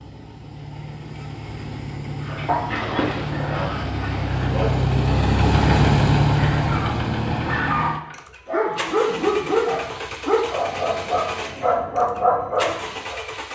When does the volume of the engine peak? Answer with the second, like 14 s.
6 s.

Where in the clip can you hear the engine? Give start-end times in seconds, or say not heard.
0.0-13.4.